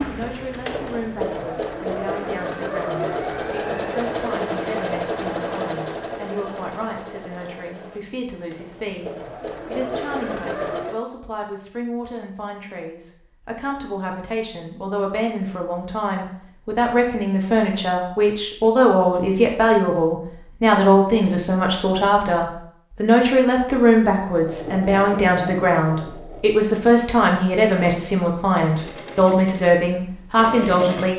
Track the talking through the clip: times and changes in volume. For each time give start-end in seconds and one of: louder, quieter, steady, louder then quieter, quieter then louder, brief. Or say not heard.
0.1-31.1 louder.